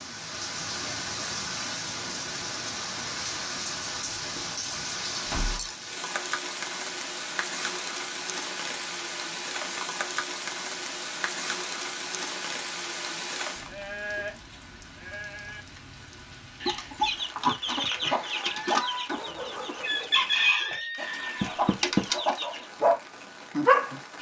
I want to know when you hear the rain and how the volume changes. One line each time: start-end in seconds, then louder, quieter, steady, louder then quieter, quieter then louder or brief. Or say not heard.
0.0-24.1 quieter.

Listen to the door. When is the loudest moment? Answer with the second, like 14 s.
22 s.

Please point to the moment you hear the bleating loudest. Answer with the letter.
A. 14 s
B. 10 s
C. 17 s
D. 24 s
A.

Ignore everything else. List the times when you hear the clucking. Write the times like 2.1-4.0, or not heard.
16.6-22.6.